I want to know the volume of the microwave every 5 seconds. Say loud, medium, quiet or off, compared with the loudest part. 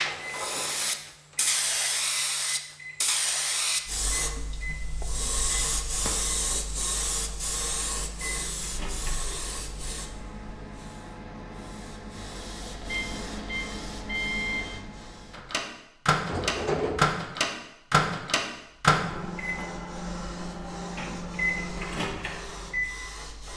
quiet, quiet, medium, loud, medium.